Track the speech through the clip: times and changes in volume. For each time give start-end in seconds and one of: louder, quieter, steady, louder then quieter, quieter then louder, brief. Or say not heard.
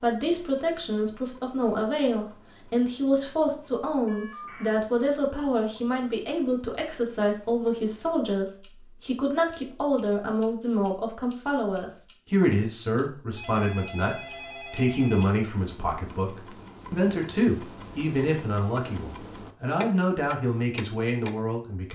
0.0-21.9 steady.